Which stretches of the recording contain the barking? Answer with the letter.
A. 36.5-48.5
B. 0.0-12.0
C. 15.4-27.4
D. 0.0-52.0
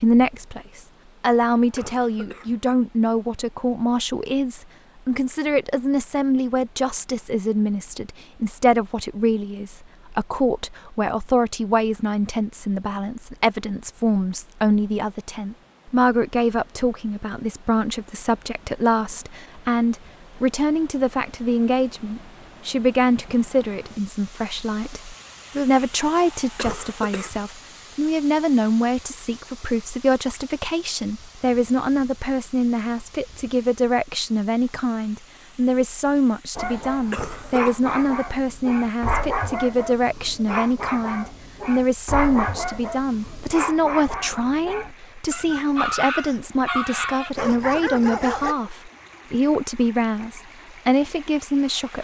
A.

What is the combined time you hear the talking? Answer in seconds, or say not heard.
52 s.